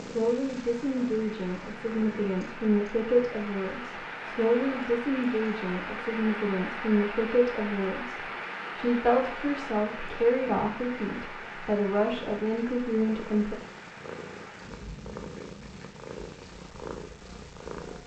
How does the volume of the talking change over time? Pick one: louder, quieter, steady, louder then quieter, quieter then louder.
steady.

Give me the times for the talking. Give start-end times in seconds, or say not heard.
0.0-13.6.